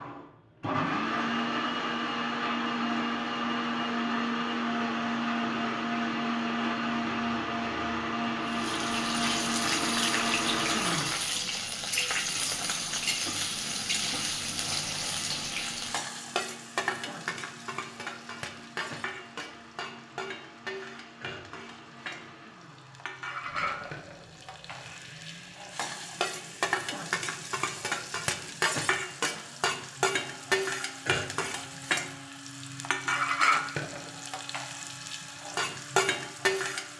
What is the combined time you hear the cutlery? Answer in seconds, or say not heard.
not heard.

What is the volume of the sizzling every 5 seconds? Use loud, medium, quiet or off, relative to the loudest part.
off, loud, loud, medium, medium, loud, loud, loud.